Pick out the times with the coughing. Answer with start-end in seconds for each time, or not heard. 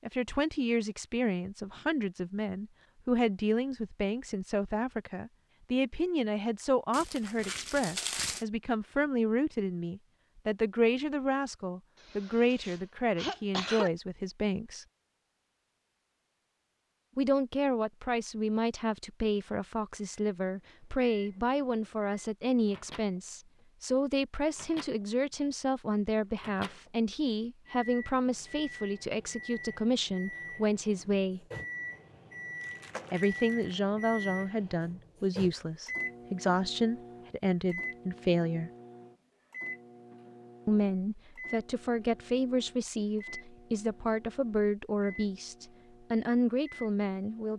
12.0-13.9.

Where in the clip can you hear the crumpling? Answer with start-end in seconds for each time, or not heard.
6.9-8.4, 32.6-33.8.